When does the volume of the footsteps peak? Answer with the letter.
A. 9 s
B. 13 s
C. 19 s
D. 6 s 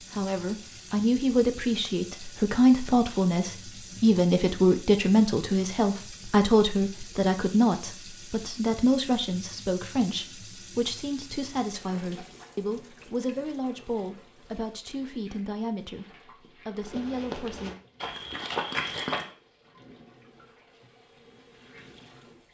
C.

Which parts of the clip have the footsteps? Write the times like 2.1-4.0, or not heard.
16.8-19.3.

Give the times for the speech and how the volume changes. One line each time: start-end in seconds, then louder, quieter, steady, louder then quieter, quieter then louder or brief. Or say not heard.
0.0-17.8 quieter.